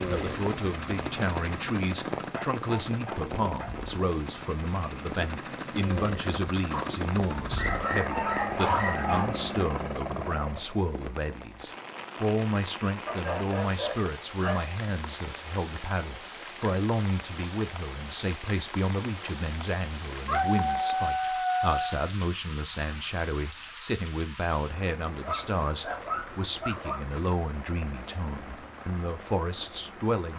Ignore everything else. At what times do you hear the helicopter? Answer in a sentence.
You can hear the helicopter from 0.0 to 10.9 s and from 27.4 to 30.1 s.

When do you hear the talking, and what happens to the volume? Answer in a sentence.
You can hear the talking from 0.1 to 30.3 s, at a steady volume.